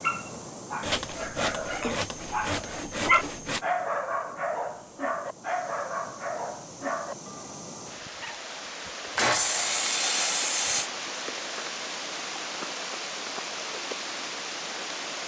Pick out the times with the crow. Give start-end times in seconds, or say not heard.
not heard.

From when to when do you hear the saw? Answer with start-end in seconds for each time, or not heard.
0.8-3.6, 9.2-10.9.